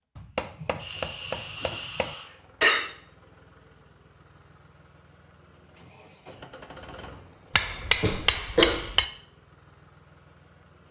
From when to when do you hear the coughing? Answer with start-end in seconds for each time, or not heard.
0.8-2.8, 7.8-8.8.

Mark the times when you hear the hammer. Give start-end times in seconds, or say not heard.
0.1-2.1, 7.5-9.1.